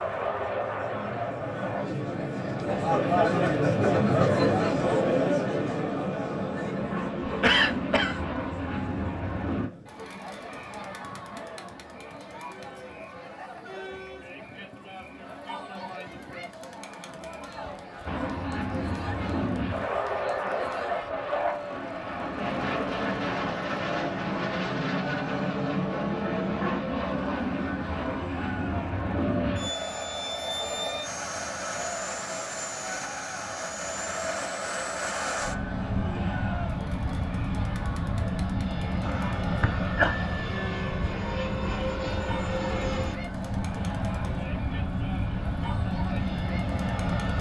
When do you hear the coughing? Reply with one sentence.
You can hear the coughing from 7.4 to 8.2 s and from 39.0 to 40.1 s.